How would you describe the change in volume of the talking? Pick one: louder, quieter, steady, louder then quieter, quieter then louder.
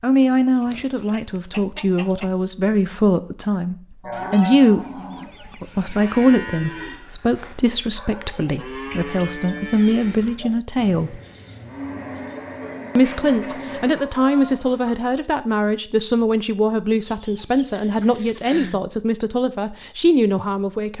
steady.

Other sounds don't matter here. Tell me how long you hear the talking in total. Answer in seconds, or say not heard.
19 s.